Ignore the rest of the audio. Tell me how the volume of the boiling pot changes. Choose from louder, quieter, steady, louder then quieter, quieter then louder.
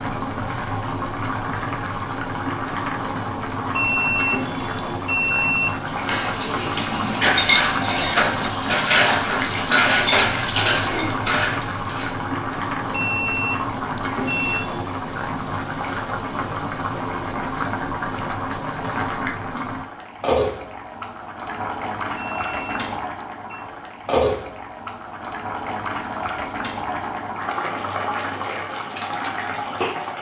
steady.